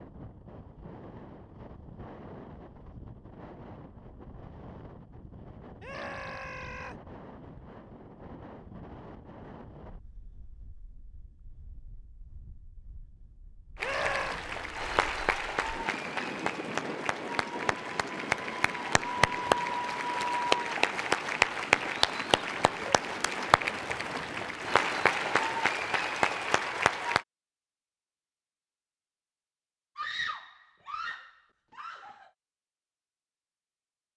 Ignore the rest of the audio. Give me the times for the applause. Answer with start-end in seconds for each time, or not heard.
13.8-27.2.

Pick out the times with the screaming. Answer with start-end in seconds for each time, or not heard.
5.8-7.0, 13.8-14.4, 29.9-32.3.